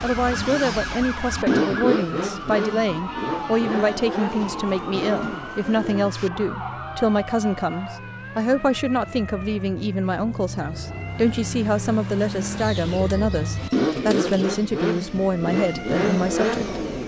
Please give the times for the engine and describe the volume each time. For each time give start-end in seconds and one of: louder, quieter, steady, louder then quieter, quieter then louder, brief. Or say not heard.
0.0-17.0 quieter then louder.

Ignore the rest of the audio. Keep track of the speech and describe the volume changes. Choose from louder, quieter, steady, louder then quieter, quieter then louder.
steady.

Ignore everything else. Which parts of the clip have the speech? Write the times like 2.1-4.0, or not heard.
0.0-16.8.